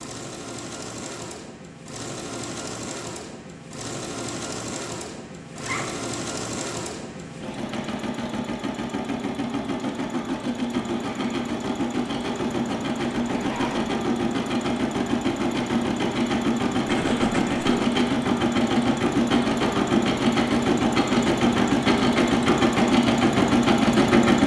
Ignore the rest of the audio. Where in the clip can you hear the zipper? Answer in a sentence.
You can hear the zipper from 5.5 to 6.0 s, from 13.3 to 13.9 s and from 16.9 to 17.9 s.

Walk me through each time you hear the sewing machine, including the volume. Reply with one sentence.
The sewing machine can be heard from 0.0 to 24.4 s, getting louder.